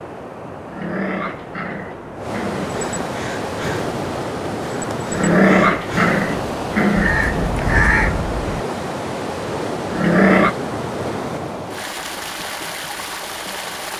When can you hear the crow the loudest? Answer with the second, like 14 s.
8 s.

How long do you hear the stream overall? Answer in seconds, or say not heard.
14 s.